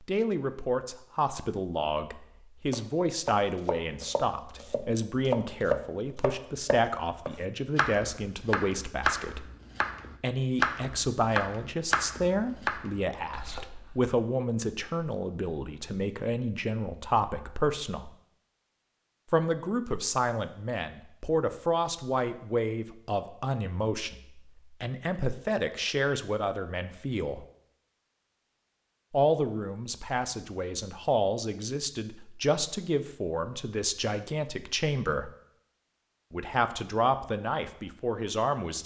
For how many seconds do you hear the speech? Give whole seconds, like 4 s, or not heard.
34 s.